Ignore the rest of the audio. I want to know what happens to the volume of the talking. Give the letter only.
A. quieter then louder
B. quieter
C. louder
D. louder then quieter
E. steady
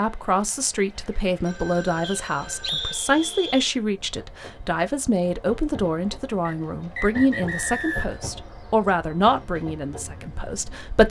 E.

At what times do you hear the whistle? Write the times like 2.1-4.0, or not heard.
2.0-3.7, 6.5-8.2.